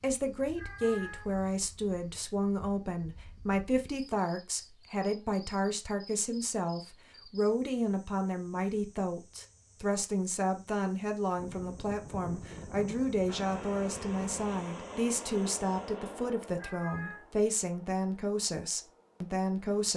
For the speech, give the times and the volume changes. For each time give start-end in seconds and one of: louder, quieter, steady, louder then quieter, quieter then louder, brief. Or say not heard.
0.0-19.9 steady.